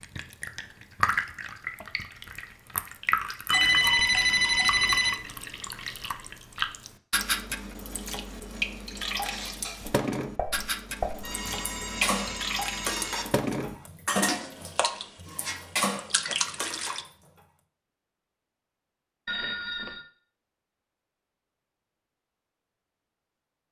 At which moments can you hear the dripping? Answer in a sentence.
You can hear the dripping from 0.0 to 17.1 s.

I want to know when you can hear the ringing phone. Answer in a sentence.
The ringing phone can be heard from 3.5 to 5.2 s, from 11.2 to 13.2 s and from 19.2 to 20.1 s.